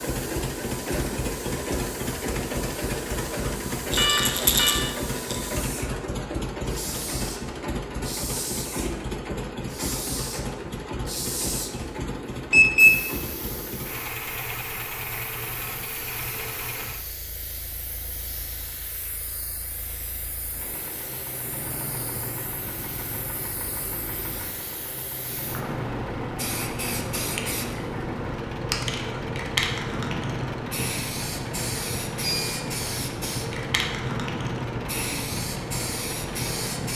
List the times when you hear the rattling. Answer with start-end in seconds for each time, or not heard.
3.9-5.5.